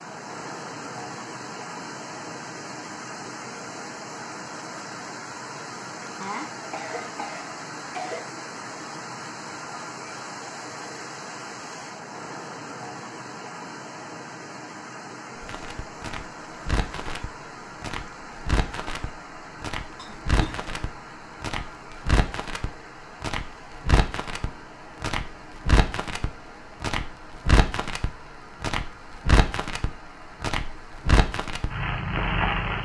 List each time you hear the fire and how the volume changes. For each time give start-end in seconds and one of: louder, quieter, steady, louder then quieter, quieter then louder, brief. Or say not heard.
15.3-32.8 louder.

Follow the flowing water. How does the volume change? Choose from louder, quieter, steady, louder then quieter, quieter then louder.
quieter.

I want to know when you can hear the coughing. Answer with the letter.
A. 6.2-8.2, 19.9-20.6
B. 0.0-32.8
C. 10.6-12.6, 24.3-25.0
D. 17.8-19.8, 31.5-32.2
A.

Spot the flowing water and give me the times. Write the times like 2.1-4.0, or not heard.
0.0-32.8.